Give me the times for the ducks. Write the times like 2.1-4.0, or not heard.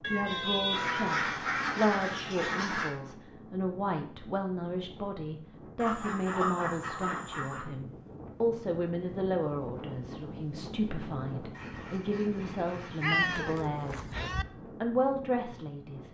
0.7-3.0, 5.8-7.7, 11.5-13.6.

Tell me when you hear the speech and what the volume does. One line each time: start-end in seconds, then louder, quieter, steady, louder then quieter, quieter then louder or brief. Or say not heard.
0.1-14.1 steady
14.8-16.1 brief.